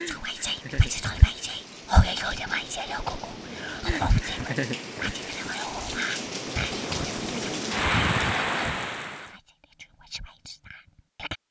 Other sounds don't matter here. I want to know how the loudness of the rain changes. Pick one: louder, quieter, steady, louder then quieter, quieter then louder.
louder.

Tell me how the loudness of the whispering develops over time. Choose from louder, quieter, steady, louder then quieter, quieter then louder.
quieter.